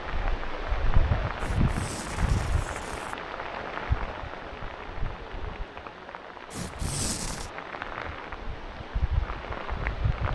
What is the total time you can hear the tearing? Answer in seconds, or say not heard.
3 s.